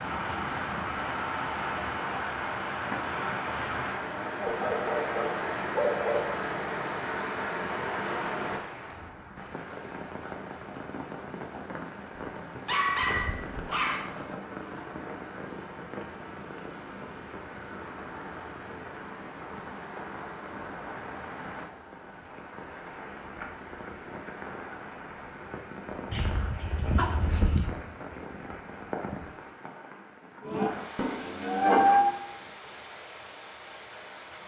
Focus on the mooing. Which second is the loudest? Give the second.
32 s.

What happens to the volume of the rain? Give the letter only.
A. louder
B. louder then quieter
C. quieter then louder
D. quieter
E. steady
D.